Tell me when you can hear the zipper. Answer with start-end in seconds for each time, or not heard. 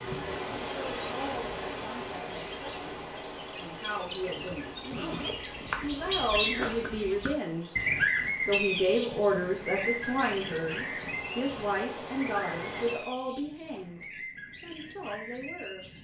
4.2-6.0.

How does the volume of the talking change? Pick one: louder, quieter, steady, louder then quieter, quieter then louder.
louder then quieter.